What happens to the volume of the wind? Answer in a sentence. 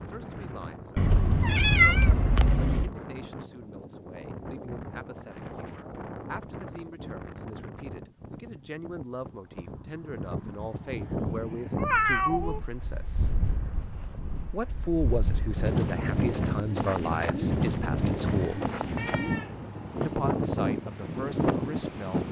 The loudness of the wind goes up.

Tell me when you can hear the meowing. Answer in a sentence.
The meowing can be heard from 0.9 to 2.9 s, from 11.8 to 12.6 s and from 18.2 to 20.1 s.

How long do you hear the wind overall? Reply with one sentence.
You can hear the wind for 22 seconds altogether.